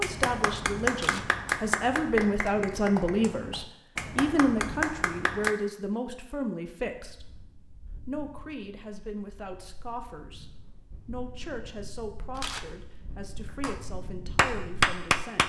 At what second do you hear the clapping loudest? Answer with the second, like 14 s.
15 s.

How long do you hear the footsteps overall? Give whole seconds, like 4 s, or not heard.
not heard.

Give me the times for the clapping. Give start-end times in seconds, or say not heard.
0.0-5.5, 13.4-15.4.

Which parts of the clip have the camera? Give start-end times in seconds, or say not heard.
0.9-1.4, 12.3-12.8.